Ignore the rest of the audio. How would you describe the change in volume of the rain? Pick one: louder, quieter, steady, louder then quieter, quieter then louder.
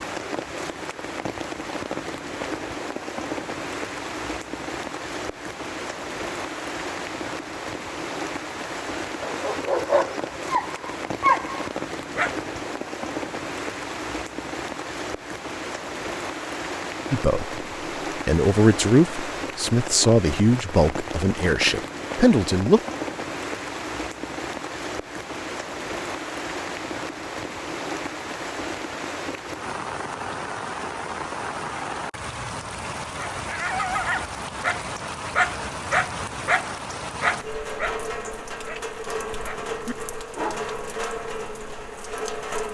steady.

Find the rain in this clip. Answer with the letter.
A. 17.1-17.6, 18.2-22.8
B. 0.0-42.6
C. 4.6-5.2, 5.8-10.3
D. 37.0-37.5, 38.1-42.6
B.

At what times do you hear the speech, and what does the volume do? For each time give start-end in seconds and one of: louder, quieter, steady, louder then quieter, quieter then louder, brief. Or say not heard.
17.1-17.6 brief
18.2-22.8 quieter then louder.